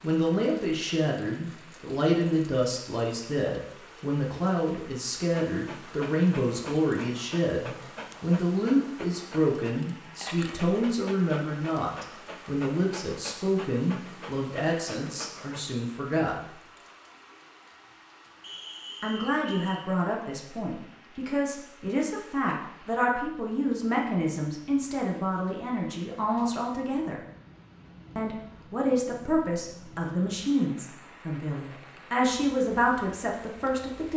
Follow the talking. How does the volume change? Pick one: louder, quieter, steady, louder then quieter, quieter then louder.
steady.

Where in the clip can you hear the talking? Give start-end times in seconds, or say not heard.
0.0-16.4, 19.0-27.2, 28.1-34.1.